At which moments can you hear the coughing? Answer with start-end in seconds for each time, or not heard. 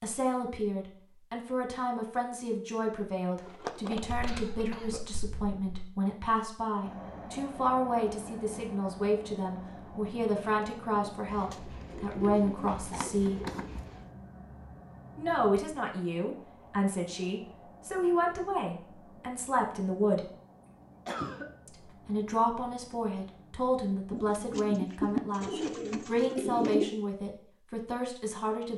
4.0-5.9, 21.1-21.5.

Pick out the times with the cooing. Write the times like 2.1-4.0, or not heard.
3.4-5.0, 11.2-14.1, 24.1-26.9.